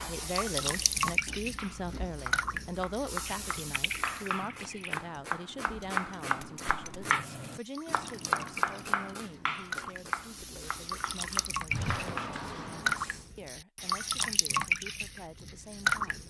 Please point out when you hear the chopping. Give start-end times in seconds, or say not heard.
1.6-12.4.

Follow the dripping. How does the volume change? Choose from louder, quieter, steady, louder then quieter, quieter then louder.
quieter then louder.